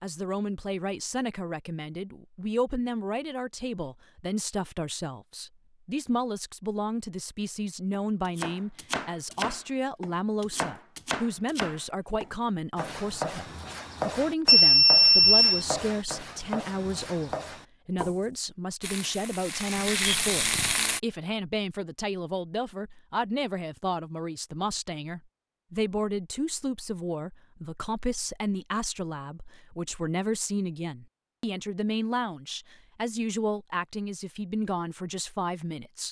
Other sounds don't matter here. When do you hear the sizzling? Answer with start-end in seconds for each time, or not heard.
18.8-21.0.